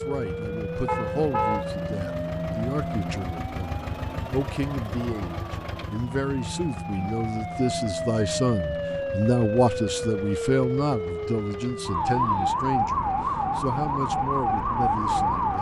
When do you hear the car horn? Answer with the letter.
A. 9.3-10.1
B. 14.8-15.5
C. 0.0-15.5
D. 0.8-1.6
D.